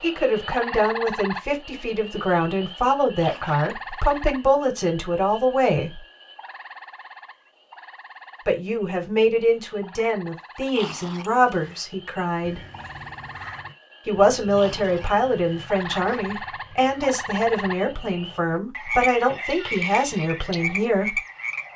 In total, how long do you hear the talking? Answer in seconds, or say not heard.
17 s.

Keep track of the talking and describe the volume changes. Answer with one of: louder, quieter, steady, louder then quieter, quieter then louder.
steady.